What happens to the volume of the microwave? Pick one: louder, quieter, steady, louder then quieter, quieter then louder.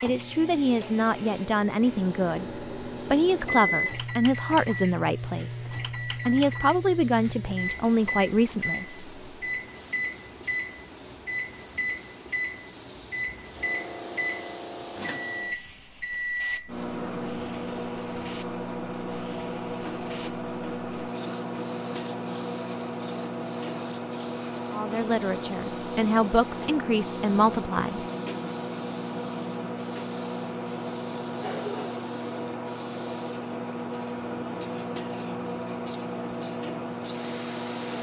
steady.